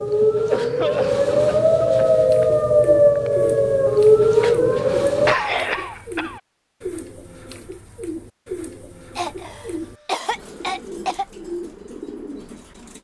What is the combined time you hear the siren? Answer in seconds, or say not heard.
5 s.